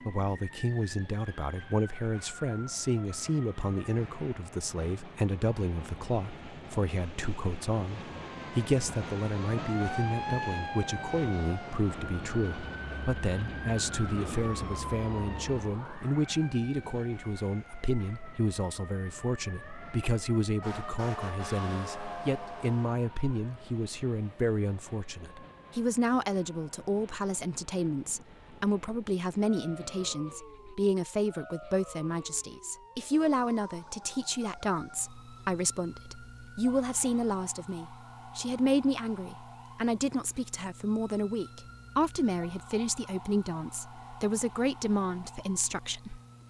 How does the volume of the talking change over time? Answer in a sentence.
The loudness of the talking stays about the same.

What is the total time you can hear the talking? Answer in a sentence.
The talking can be heard for 46 seconds in total.